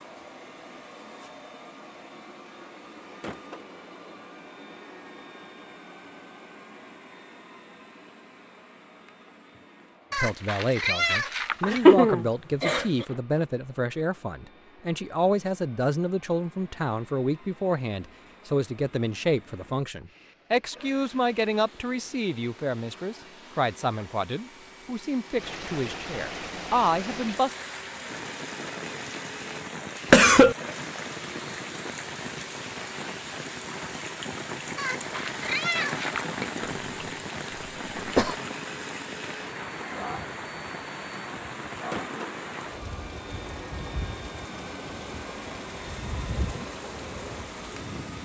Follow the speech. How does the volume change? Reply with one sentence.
The volume of the speech stays about the same.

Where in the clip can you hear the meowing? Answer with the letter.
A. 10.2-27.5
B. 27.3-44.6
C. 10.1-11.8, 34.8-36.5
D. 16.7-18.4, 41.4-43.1
C.